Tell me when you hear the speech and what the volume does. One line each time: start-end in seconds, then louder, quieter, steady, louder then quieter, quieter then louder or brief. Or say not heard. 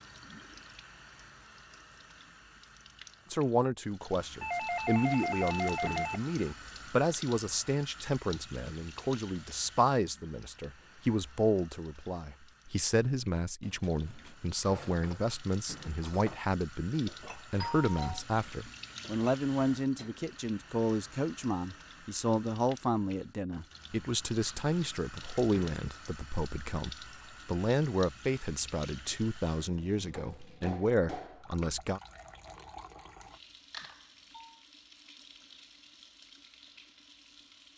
3.3-32.0 steady.